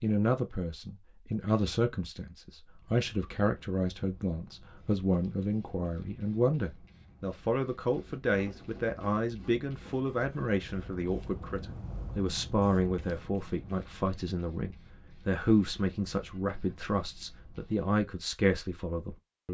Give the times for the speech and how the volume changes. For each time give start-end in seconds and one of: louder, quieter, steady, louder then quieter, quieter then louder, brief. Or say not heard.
0.0-19.5 steady.